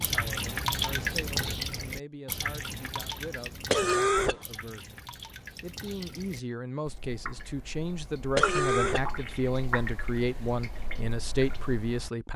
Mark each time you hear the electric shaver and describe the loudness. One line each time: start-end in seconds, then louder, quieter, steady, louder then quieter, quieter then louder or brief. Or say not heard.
not heard.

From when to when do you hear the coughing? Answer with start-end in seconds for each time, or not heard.
3.7-4.4, 8.3-9.1.